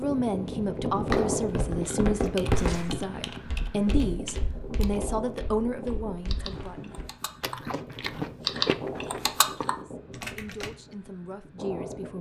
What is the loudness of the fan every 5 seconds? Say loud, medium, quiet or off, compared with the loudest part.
loud, medium, medium.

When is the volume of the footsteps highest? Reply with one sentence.
The volume of the footsteps peaks at 3 seconds.